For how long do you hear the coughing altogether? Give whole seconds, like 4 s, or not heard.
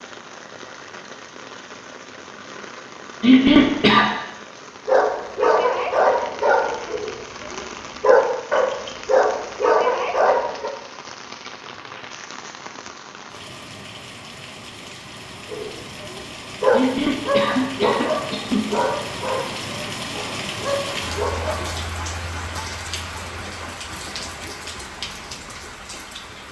3 s.